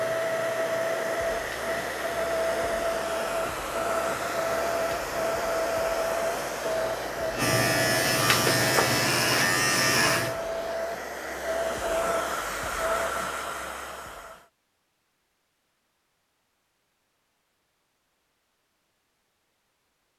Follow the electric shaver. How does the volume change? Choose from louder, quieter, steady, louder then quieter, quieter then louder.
louder.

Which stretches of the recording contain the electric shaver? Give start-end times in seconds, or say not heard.
0.0-10.3.